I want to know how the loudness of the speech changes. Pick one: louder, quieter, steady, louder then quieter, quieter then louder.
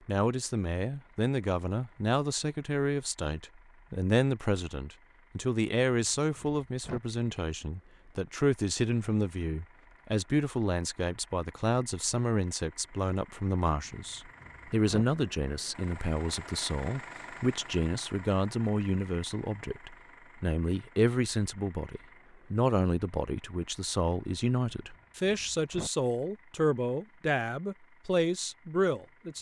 steady.